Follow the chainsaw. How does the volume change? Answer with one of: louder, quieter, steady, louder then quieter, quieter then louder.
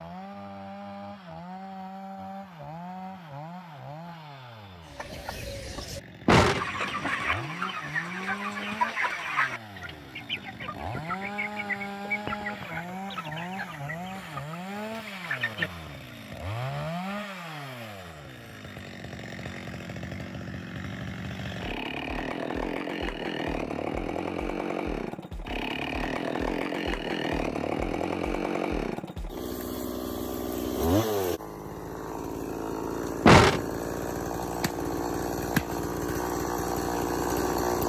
louder.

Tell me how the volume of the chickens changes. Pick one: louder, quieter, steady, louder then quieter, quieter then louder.
quieter.